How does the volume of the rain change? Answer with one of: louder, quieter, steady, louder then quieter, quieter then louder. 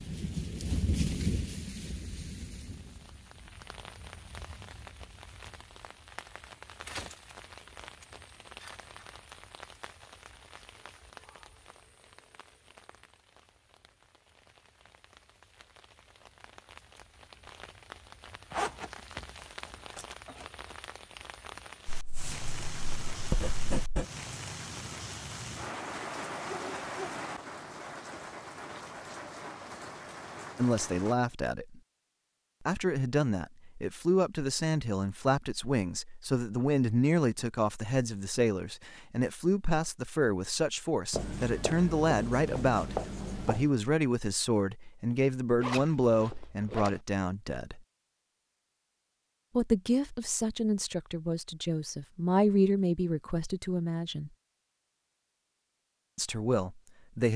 quieter then louder.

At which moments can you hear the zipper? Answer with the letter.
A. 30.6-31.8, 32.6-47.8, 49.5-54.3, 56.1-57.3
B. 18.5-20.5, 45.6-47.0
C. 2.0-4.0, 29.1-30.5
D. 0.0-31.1
B.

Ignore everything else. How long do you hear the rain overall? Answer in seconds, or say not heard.
31 s.